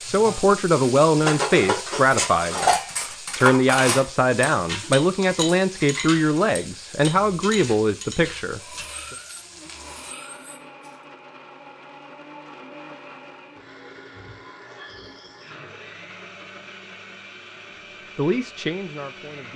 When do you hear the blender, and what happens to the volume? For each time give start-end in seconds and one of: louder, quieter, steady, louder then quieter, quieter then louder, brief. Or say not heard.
9.3-19.5 steady.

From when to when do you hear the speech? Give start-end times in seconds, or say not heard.
0.0-9.2, 18.1-19.5.